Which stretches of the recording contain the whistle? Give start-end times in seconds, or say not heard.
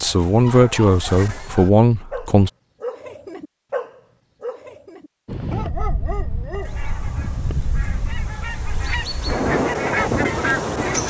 not heard.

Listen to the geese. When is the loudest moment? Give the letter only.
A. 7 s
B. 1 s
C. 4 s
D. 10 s
D.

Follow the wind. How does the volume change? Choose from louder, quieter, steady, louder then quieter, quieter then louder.
louder.